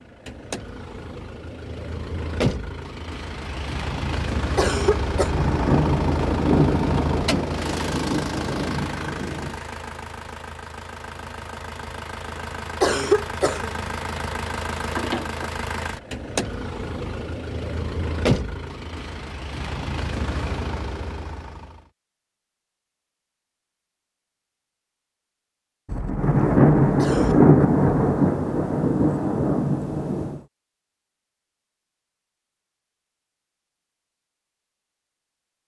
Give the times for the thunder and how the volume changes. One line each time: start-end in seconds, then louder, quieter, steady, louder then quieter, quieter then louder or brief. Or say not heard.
5.2-9.6 quieter
25.9-30.4 quieter.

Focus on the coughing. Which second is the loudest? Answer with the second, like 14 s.
13 s.